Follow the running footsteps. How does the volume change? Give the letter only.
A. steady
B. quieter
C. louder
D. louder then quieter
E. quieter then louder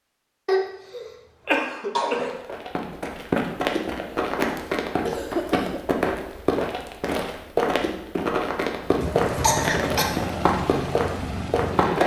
A.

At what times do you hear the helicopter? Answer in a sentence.
The helicopter can be heard from 8.8 to 12.0 s.